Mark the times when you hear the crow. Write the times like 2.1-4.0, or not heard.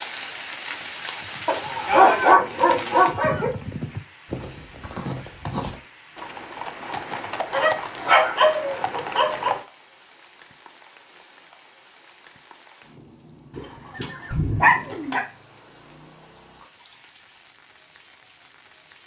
not heard.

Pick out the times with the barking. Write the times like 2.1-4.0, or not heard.
1.4-3.5, 7.5-9.5, 13.6-15.2.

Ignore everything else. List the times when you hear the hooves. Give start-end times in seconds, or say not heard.
1.1-9.7.